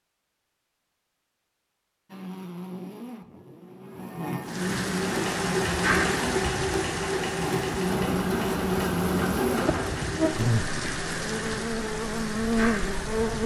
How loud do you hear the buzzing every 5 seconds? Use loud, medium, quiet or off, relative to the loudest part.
medium, loud, loud.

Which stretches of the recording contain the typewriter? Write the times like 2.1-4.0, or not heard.
not heard.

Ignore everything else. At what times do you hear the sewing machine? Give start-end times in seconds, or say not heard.
4.9-10.4.